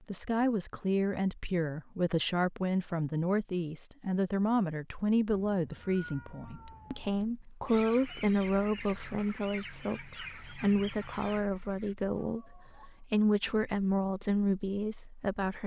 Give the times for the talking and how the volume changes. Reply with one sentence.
The talking can be heard from 0.1 to 15.6 s, at a steady volume.